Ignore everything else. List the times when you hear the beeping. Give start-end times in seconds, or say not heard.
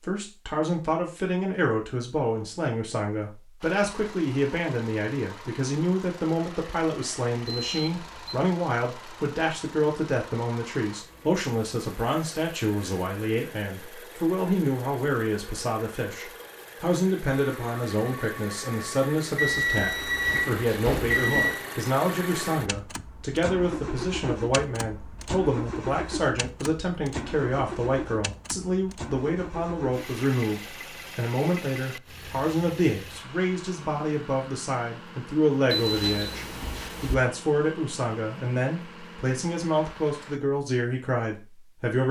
7.6-8.5, 19.4-21.6, 35.7-37.1.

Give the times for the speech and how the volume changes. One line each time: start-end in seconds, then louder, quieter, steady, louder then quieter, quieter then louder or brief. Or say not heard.
0.0-42.0 steady.